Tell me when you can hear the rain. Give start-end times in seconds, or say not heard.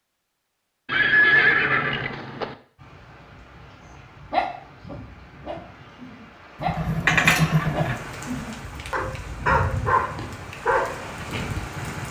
2.8-12.0.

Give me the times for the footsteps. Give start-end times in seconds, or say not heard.
not heard.